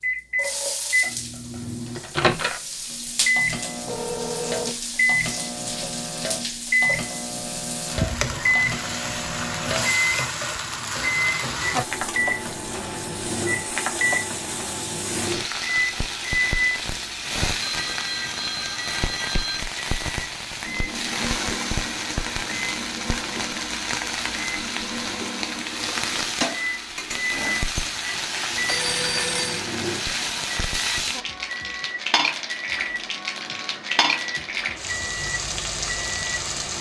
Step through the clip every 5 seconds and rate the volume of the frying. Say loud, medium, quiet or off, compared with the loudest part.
medium, loud, loud, loud, loud, loud, loud, loud.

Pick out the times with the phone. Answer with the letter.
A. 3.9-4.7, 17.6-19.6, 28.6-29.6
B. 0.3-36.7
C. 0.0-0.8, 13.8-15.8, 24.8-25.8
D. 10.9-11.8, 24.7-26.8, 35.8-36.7
A.